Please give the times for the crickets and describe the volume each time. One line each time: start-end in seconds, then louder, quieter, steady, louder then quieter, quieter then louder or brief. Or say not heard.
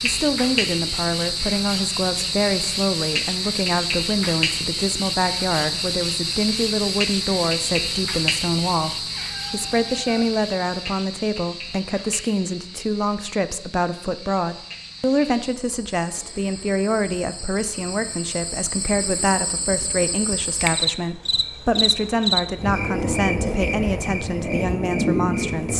0.0-25.7 quieter then louder.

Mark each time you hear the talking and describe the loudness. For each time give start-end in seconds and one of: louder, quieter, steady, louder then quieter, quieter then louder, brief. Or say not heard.
0.0-25.7 steady.